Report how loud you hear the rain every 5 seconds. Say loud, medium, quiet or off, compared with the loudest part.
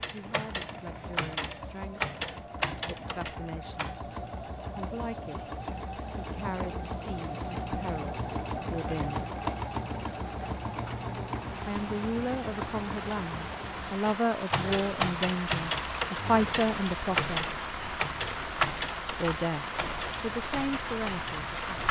quiet, quiet, medium, loud, loud.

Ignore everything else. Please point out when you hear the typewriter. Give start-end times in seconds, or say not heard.
0.0-4.0, 14.1-21.8.